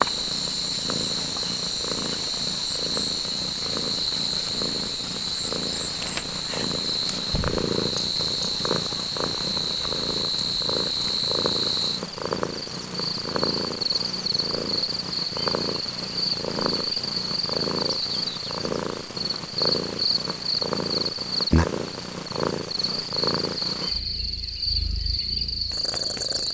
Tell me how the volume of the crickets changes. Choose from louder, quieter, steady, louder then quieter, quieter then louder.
steady.